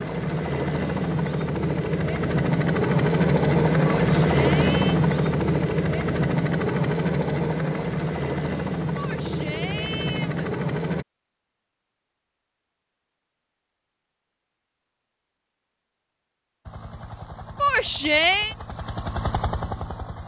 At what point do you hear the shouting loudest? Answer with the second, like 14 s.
18 s.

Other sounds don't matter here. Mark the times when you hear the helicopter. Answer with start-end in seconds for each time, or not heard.
0.0-11.1, 16.6-20.2.